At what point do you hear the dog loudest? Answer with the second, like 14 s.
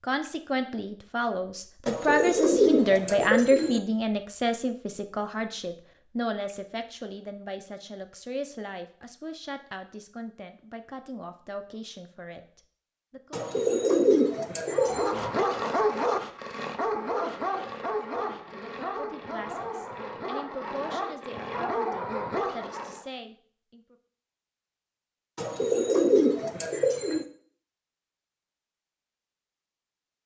16 s.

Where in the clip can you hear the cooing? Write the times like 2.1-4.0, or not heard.
1.9-3.8, 13.3-15.2, 25.4-27.2.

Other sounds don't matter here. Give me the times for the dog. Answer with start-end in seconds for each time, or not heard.
14.7-23.1.